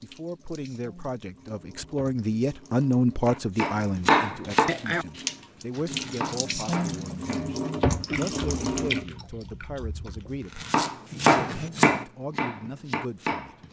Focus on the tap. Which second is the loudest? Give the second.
8 s.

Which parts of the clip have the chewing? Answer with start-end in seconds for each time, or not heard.
8.1-10.5.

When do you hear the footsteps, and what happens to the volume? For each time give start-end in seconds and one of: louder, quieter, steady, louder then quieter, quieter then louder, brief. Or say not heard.
not heard.